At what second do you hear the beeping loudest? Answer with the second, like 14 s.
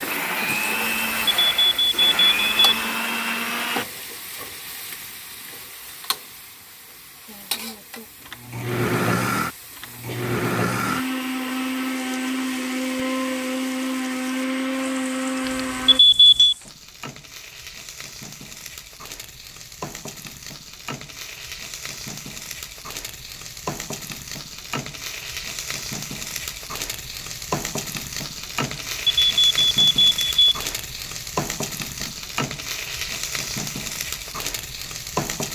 16 s.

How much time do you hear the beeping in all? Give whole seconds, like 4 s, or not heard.
5 s.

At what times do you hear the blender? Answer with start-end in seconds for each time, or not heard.
0.0-3.9, 8.2-16.0.